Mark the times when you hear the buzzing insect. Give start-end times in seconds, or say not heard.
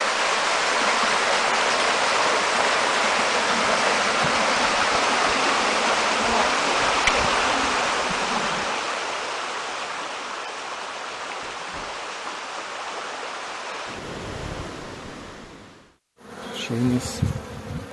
3.5-8.8, 16.2-17.8.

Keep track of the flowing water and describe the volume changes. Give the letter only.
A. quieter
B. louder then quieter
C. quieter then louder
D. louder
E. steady
A.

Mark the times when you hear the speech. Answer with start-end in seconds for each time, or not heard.
not heard.